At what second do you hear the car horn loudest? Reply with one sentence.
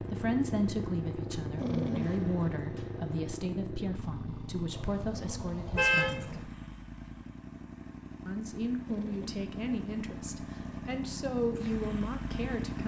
The volume of the car horn peaks at 6 seconds.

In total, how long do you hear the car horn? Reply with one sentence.
You can hear the car horn for 2 seconds altogether.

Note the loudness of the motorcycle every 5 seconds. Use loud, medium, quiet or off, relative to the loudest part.
loud, medium, loud.